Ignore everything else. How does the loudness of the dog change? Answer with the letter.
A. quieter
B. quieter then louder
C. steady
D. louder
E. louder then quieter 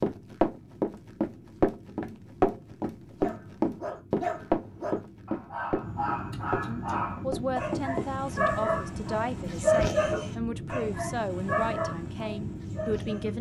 E.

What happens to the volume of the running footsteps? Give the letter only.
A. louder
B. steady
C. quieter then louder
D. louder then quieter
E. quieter
E.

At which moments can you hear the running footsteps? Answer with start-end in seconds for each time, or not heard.
0.0-8.1.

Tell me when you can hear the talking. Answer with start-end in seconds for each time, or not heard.
6.7-13.3.